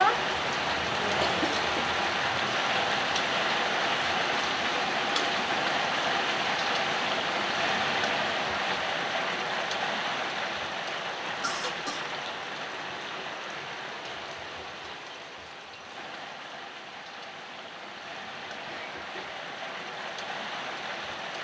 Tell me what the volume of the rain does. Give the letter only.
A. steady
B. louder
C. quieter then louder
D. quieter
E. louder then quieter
D.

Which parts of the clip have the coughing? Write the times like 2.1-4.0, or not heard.
1.2-1.9, 11.4-12.0, 18.6-19.4.